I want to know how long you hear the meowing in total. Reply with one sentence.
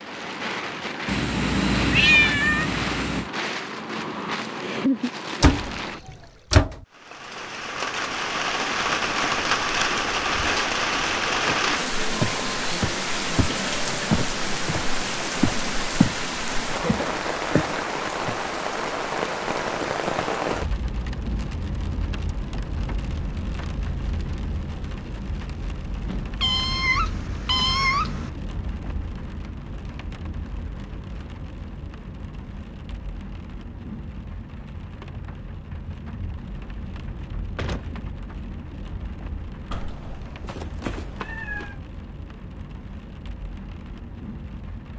The meowing can be heard for 6 seconds in total.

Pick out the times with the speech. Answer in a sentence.
You can't hear the speech here.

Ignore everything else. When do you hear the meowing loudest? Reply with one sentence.
The loudest moment of the meowing is at 2 seconds.